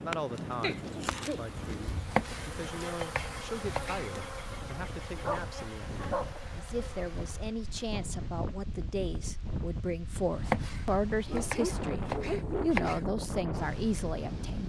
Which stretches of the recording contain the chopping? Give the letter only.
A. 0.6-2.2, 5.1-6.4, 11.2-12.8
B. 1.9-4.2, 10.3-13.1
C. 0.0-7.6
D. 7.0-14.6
B.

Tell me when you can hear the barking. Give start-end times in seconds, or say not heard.
0.6-2.2, 5.1-6.4, 11.2-12.8.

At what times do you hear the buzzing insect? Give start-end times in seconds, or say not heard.
0.0-7.6.